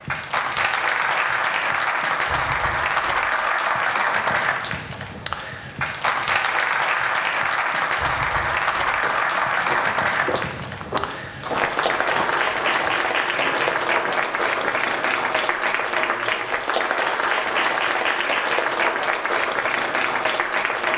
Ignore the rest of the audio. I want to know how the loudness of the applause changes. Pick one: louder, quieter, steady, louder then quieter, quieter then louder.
steady.